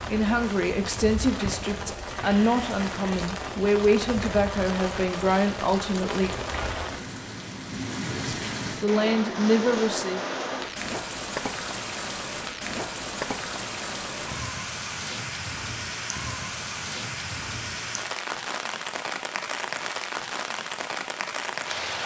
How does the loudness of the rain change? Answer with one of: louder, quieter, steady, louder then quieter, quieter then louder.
steady.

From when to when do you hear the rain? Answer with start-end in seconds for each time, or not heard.
0.0-22.0.